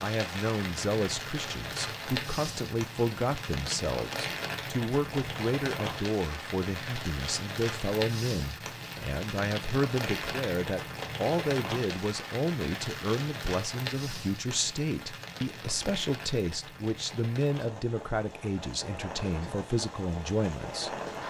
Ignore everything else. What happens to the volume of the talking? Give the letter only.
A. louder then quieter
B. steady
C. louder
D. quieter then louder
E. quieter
B.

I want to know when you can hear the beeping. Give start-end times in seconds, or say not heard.
not heard.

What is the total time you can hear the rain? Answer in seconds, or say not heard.
21 s.